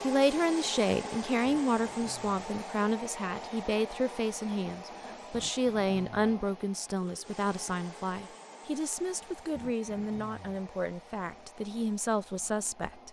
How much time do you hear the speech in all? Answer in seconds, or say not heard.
13 s.